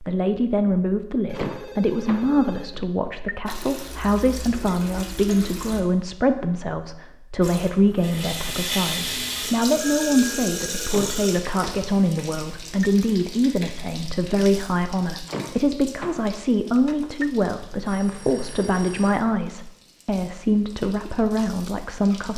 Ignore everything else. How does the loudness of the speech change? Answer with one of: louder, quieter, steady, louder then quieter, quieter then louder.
steady.